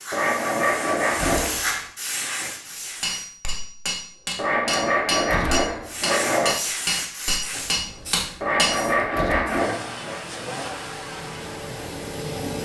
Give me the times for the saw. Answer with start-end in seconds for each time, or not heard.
0.1-1.6, 4.3-6.6, 8.4-10.2.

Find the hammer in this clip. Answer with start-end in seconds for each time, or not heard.
2.6-8.8.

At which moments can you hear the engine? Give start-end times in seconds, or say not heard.
8.8-12.6.